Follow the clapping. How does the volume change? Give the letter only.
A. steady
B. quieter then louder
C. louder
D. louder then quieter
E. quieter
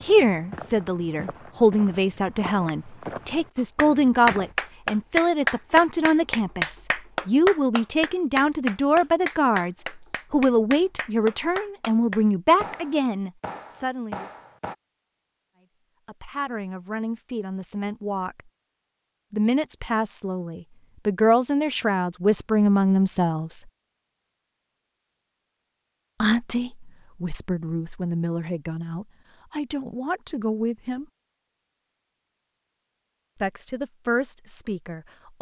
E.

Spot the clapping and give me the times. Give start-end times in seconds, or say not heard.
3.5-14.8.